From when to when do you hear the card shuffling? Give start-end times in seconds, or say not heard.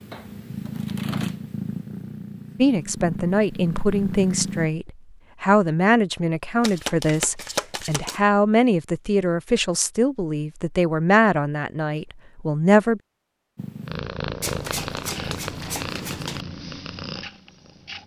0.1-1.4, 6.6-8.2, 14.4-16.4.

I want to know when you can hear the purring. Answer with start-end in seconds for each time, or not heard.
0.0-4.7, 13.6-18.0.